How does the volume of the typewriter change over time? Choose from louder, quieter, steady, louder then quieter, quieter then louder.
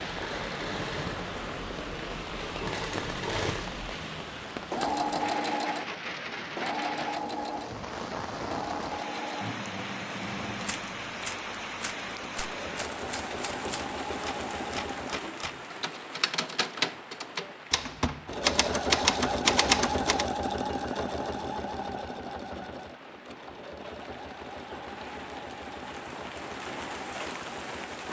louder.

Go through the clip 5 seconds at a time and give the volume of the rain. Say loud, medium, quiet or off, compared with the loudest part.
loud, loud, loud, medium, medium, loud.